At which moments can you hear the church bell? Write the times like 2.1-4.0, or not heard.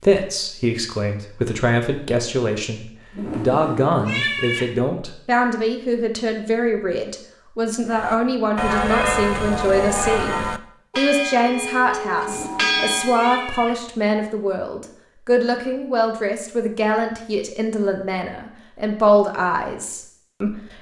7.9-13.5.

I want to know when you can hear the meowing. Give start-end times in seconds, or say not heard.
3.1-4.7, 12.2-13.8.